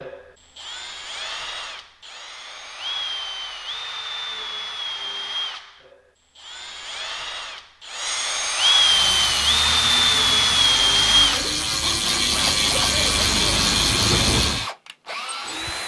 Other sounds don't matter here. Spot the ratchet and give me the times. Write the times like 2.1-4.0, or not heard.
8.8-14.7.